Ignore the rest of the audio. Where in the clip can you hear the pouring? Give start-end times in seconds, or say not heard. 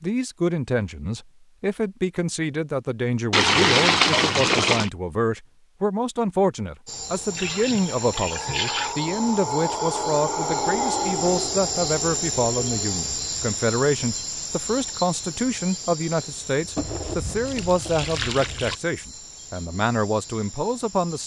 3.3-4.9, 7.3-8.9, 16.8-18.8.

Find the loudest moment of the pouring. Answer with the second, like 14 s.
4 s.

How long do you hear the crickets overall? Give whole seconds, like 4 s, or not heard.
14 s.